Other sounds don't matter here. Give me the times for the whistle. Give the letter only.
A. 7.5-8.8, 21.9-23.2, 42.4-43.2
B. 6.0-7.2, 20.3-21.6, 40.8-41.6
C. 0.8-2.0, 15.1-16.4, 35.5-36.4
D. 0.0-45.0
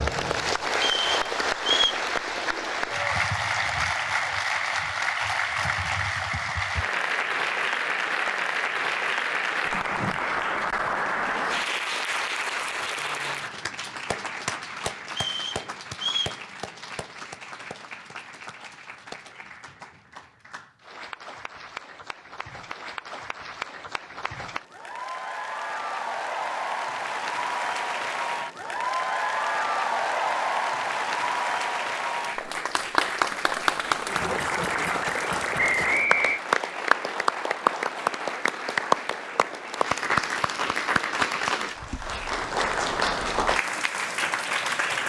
C.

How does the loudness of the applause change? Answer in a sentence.
The volume of the applause goes down, then up.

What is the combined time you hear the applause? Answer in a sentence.
You can hear the applause for 45 seconds altogether.